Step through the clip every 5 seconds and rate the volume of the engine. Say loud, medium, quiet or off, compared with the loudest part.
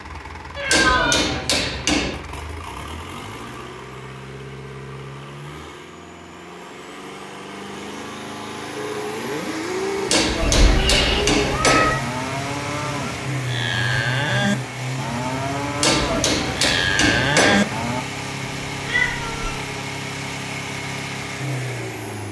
medium, medium, loud, loud, loud.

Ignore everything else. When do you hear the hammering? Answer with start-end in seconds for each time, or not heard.
0.7-2.2, 10.1-11.9, 15.8-17.6.